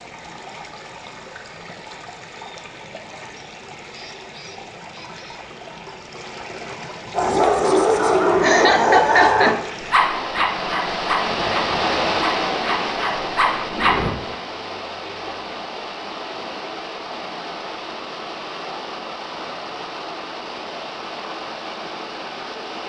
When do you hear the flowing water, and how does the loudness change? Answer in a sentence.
You can hear the flowing water from 0.0 to 22.8 s, getting louder then quieter.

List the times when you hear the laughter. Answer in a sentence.
The laughter can be heard from 8.4 to 9.6 s.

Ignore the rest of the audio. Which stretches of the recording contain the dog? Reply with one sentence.
You can hear the dog from 7.1 to 14.1 s.